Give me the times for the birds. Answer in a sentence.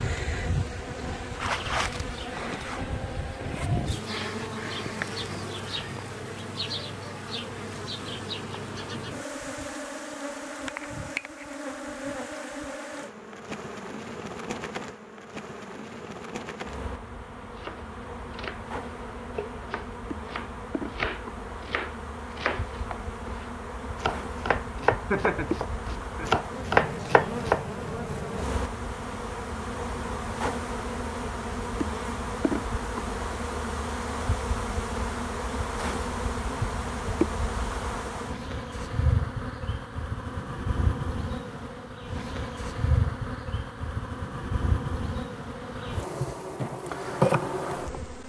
The birds can't be heard in this clip.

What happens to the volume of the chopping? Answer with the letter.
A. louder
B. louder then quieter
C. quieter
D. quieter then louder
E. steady
A.